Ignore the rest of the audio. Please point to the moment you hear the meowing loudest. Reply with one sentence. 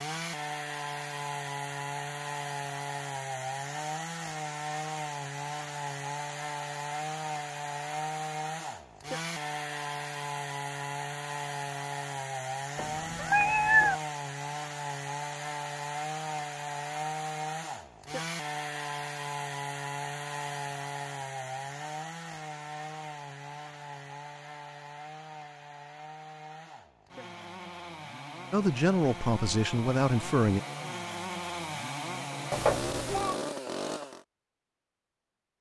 The loudest moment of the meowing is at 14 seconds.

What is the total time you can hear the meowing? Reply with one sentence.
The meowing can be heard for 2 seconds in total.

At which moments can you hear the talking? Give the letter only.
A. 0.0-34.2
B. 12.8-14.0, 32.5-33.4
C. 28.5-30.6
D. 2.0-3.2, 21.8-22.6
C.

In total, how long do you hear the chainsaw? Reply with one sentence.
You can hear the chainsaw for 34 seconds altogether.